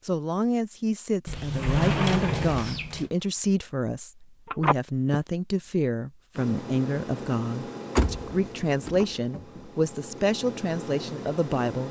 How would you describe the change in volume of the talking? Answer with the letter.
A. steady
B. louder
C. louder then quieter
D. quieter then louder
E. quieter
A.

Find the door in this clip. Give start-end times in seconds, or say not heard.
1.2-3.1, 8.0-9.7.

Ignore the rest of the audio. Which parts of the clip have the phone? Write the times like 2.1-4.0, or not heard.
4.5-5.2.